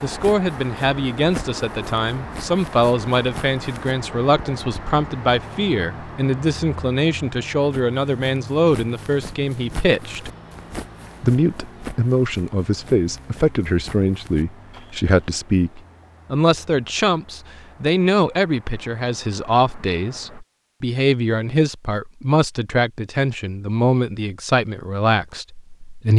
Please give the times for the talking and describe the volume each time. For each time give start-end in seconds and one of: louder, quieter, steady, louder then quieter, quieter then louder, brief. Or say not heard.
0.0-10.3 steady
11.2-26.1 steady.